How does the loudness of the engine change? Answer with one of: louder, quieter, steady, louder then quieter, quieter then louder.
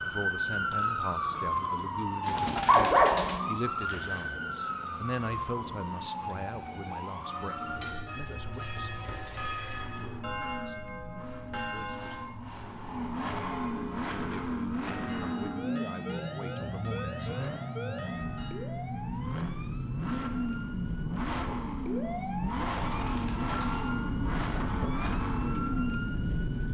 louder.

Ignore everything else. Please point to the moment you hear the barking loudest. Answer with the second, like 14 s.
3 s.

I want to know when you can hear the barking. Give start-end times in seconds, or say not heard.
2.6-4.2.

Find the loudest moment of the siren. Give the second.
1 s.